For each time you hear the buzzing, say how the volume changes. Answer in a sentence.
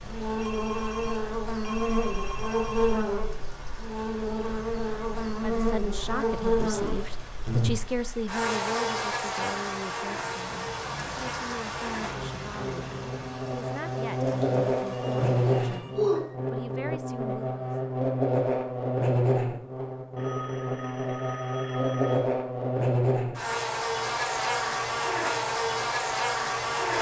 The buzzing can be heard from 0.0 to 26.9 s, at a steady volume.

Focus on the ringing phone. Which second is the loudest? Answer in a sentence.
The volume of the ringing phone peaks at 16 seconds.